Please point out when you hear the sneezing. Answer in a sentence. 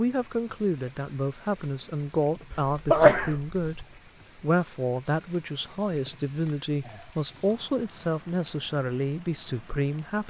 The sneezing can be heard from 2.5 to 3.9 s.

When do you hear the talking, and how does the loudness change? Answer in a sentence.
The talking can be heard from 0.0 to 10.2 s, at a steady volume.